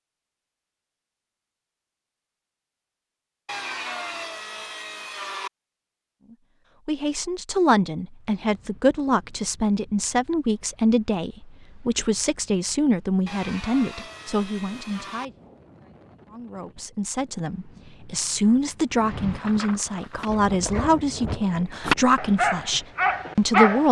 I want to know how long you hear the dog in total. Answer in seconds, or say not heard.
4 s.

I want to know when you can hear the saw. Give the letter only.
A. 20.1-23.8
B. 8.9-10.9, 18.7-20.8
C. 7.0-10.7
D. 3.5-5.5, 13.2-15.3
D.